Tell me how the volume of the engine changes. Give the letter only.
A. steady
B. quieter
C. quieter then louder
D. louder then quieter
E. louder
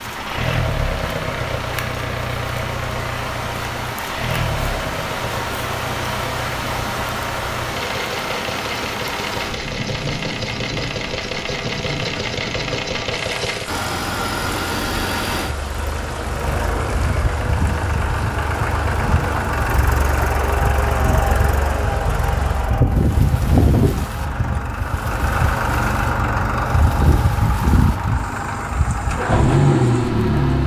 E.